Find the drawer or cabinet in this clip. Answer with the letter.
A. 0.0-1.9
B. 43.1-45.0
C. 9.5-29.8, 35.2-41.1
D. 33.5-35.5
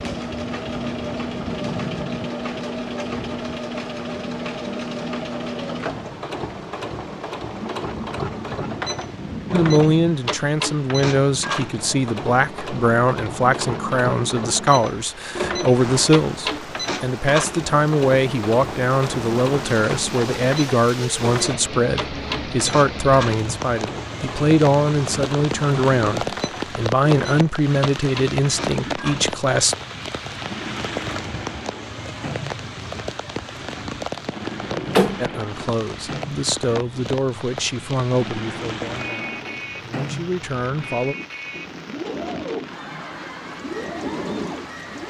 D.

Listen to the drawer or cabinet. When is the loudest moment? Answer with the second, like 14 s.
35 s.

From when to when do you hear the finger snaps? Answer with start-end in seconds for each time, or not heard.
not heard.